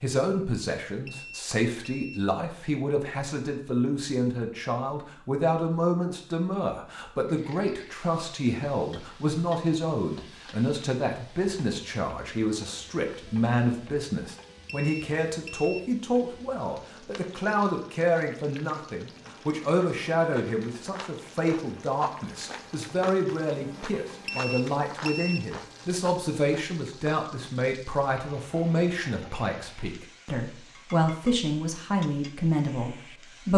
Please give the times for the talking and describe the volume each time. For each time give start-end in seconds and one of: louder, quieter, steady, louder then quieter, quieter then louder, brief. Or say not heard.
0.0-33.5 steady.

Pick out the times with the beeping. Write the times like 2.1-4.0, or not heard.
1.1-2.2, 14.7-15.8, 24.2-25.4.